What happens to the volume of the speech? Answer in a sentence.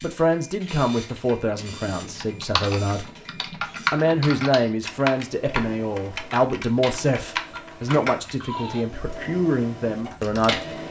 The volume of the speech stays about the same.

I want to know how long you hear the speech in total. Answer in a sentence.
You can hear the speech for 10 seconds altogether.